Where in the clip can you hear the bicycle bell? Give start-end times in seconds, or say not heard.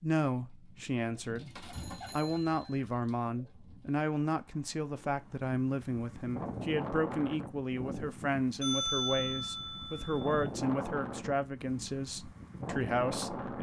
1.7-2.8, 8.6-10.2.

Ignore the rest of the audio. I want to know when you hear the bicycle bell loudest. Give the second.
9 s.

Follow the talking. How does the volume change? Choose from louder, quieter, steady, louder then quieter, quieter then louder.
steady.